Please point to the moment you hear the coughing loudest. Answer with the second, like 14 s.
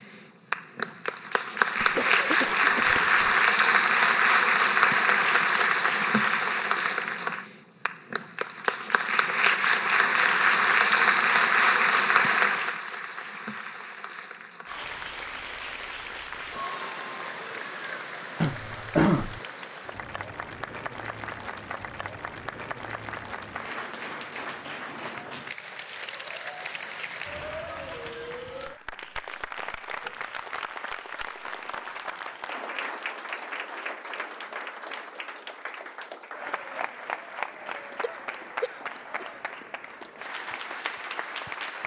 19 s.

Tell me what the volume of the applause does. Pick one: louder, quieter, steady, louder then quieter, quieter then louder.
quieter.